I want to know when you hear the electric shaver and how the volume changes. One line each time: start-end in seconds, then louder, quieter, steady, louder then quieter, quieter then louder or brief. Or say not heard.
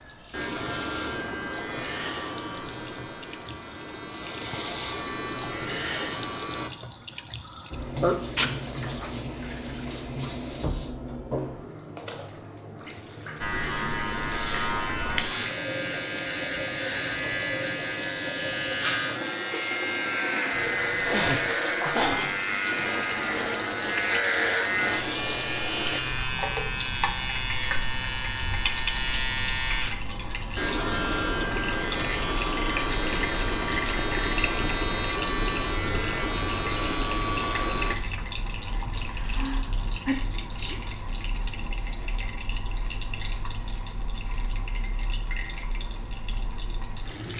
0.0-6.7 quieter then louder
13.4-38.0 steady.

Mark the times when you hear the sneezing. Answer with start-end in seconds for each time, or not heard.
8.0-8.5, 20.8-22.3, 39.2-40.8.